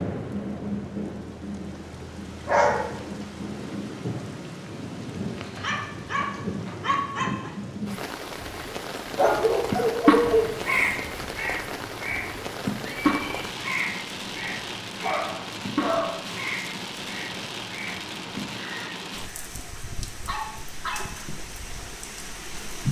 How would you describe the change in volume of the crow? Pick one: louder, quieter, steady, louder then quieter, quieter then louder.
quieter.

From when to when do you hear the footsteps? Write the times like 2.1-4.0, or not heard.
not heard.